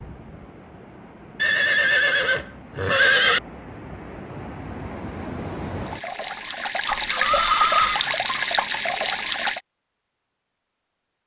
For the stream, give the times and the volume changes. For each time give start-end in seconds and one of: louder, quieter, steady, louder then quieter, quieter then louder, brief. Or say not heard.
0.0-9.6 louder.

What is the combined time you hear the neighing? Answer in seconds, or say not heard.
3 s.